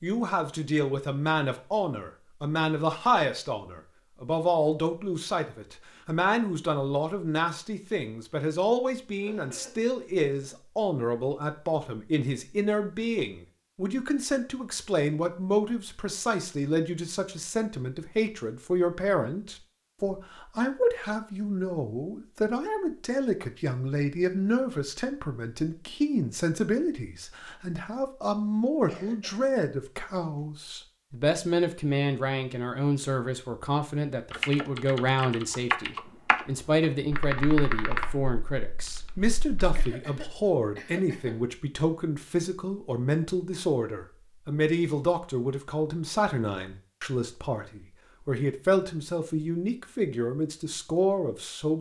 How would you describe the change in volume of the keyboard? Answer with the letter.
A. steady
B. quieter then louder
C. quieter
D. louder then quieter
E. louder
D.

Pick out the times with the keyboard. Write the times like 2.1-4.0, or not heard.
34.3-39.9.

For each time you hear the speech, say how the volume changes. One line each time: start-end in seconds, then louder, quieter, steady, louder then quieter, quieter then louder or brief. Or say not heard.
0.0-51.7 steady.